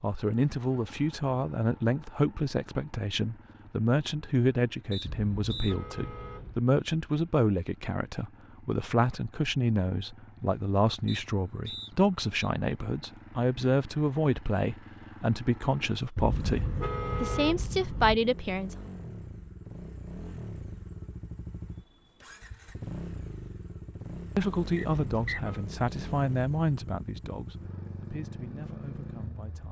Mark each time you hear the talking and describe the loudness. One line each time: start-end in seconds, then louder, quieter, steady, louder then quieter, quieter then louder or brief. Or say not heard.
0.0-18.8 steady
24.4-29.6 quieter.